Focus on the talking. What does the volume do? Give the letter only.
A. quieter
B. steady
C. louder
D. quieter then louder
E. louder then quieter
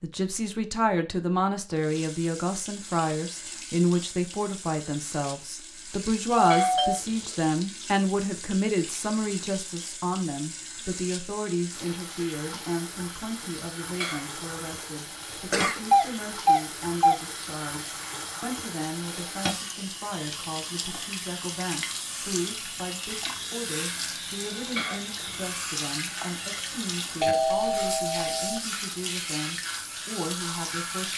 A.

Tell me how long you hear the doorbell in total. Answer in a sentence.
You can hear the doorbell for 3 seconds altogether.